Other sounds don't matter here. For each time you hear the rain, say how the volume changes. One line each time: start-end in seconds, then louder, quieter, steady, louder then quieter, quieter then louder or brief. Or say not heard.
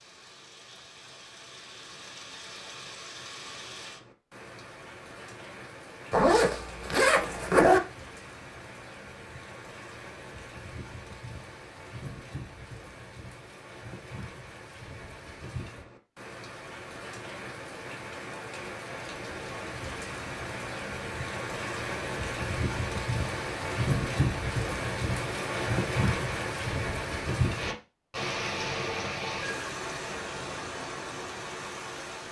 0.0-32.2 louder.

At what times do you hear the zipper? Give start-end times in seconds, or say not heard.
6.1-7.8.